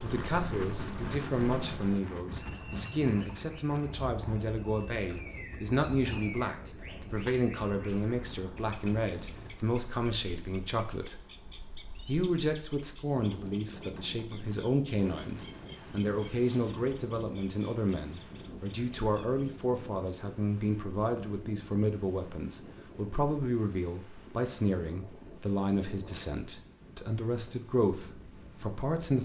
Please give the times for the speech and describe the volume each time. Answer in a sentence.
You can hear the speech from 0.0 to 11.2 s, at a steady volume; and from 12.1 to 29.2 s, at a steady volume.